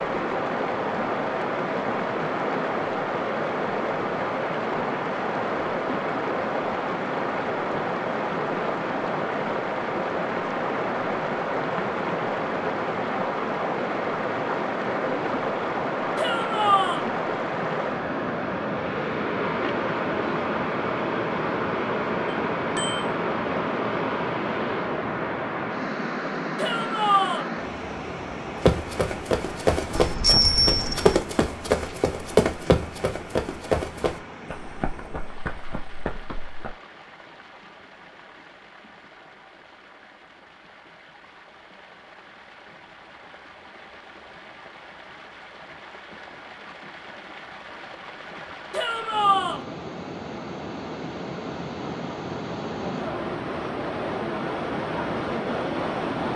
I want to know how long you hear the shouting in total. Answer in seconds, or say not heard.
3 s.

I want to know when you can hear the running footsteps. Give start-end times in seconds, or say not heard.
28.6-36.8.